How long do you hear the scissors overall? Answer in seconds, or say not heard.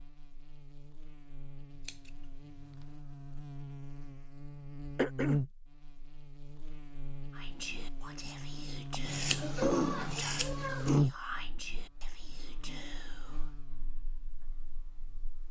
3 s.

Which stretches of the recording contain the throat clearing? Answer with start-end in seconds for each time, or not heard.
5.0-5.4, 8.9-11.1.